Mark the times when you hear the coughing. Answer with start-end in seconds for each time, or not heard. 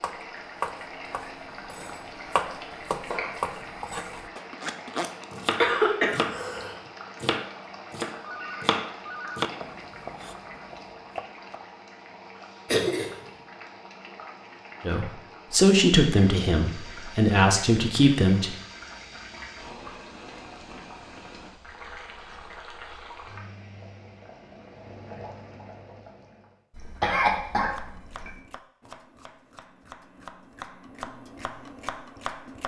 5.6-6.8, 12.7-13.1, 26.8-28.4.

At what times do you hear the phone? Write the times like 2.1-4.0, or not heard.
8.2-9.4.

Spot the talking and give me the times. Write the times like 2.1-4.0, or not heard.
14.8-18.5.